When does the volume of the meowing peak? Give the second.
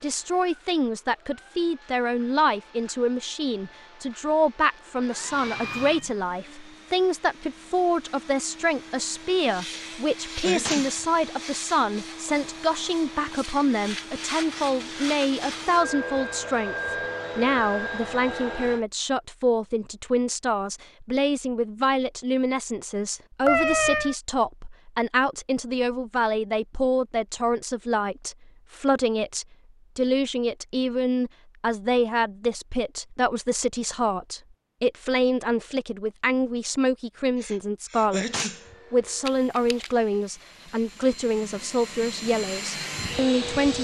24 s.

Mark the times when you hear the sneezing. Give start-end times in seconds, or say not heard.
9.7-11.1, 37.4-38.8.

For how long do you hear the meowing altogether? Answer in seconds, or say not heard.
2 s.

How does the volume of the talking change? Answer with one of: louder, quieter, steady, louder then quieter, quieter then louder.
steady.